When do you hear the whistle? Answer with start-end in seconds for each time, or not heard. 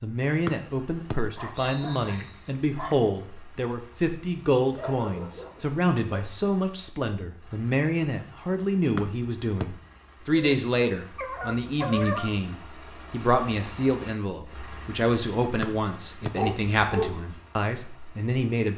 0.5-2.3, 8.9-9.7, 15.6-16.3.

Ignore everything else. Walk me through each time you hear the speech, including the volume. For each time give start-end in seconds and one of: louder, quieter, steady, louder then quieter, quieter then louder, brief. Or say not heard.
0.0-18.7 steady.